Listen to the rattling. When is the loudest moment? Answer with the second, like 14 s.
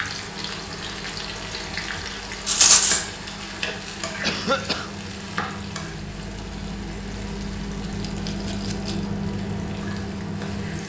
3 s.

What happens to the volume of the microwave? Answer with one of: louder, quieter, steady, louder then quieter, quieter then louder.
louder.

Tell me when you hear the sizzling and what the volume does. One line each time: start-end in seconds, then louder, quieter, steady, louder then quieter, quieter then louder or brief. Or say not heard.
0.0-10.8 quieter.